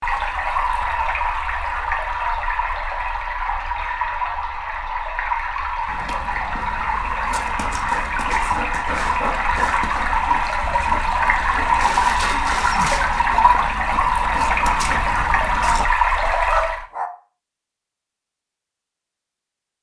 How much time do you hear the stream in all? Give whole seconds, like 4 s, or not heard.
17 s.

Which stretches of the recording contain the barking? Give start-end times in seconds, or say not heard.
5.8-17.1.